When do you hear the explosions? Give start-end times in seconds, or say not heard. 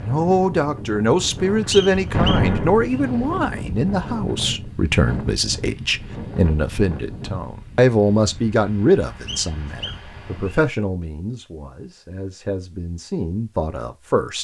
2.1-3.0.